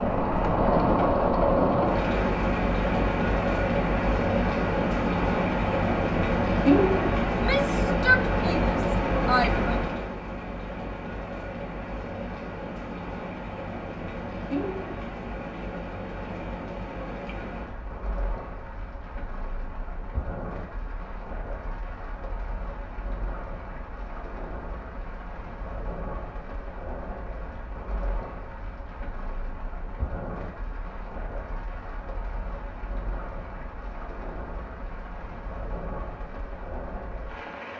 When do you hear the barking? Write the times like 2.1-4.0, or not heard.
not heard.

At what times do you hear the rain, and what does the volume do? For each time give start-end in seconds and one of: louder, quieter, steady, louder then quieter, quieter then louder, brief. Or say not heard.
0.0-37.7 quieter.